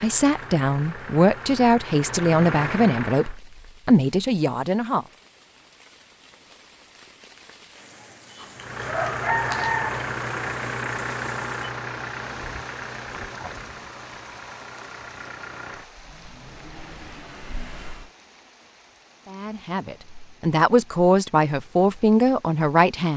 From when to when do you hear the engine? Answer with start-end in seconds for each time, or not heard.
0.0-3.4, 8.6-18.1.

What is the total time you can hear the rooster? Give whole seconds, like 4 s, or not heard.
2 s.